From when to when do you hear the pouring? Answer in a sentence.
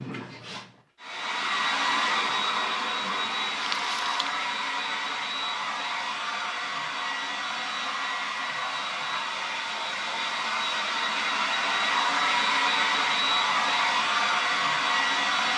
You can hear the pouring from 3.6 to 4.3 s.